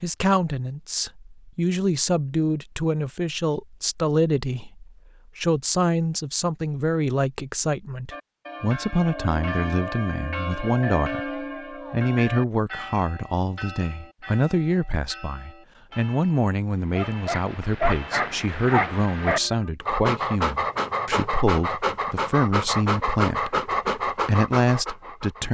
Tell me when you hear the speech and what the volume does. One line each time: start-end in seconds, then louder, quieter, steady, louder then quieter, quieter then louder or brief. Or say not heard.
0.0-25.5 steady.